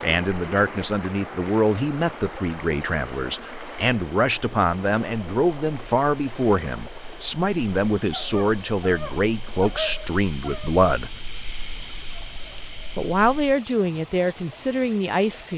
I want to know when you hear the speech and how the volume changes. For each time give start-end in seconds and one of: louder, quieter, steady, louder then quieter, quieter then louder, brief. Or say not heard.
0.0-11.1 steady
12.9-15.5 brief.